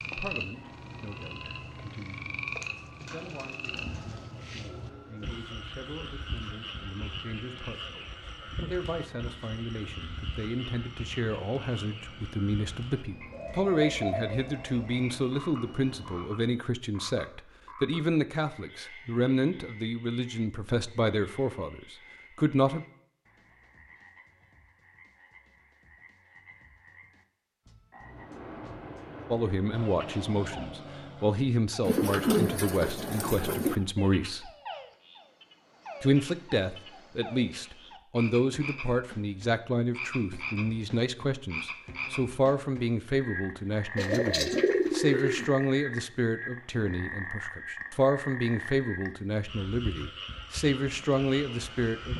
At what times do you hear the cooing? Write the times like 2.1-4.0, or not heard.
3.0-5.3, 13.3-15.1, 31.8-33.8, 44.0-45.5.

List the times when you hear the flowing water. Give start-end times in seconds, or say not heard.
not heard.